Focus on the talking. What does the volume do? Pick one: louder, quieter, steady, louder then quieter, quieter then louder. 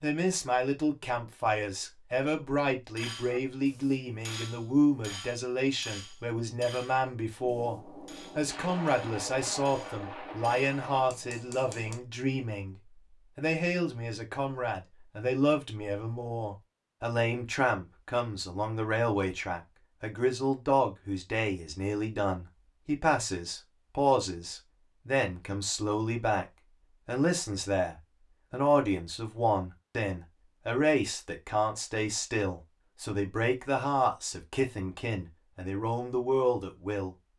steady.